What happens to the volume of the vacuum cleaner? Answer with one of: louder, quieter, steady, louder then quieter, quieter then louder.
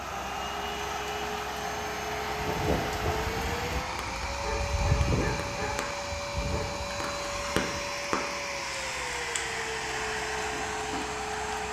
steady.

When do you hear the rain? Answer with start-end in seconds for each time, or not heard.
0.0-11.6.